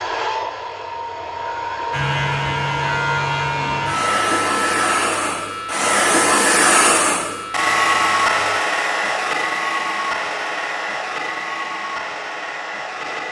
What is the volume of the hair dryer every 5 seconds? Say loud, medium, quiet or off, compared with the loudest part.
medium, loud, medium.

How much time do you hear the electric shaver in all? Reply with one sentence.
The electric shaver can be heard for 7 seconds in total.